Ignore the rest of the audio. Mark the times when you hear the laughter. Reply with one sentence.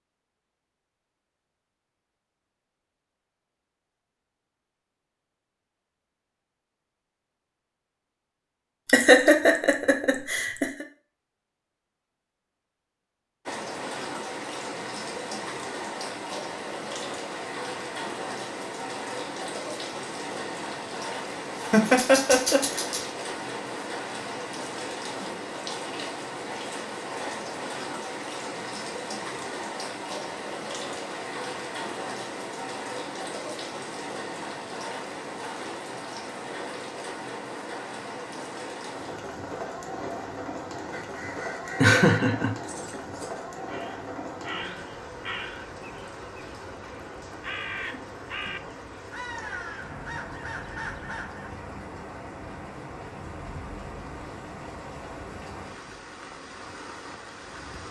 You can hear the laughter from 8.8 to 10.8 s, from 21.7 to 23.1 s and from 41.8 to 42.5 s.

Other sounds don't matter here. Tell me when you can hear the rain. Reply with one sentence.
The rain can be heard from 13.4 to 57.8 s.